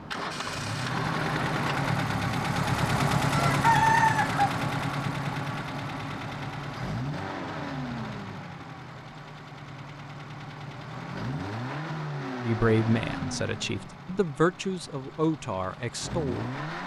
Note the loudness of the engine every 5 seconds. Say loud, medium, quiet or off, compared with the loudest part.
loud, medium, medium, medium.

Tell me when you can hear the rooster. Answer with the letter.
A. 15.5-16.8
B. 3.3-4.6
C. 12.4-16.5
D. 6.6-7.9
B.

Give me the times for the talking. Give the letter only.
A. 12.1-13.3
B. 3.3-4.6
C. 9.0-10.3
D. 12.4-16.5
D.